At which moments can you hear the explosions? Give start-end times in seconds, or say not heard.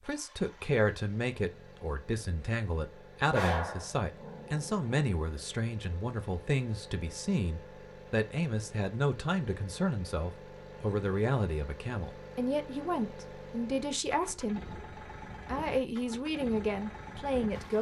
not heard.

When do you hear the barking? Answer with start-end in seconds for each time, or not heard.
3.3-4.9.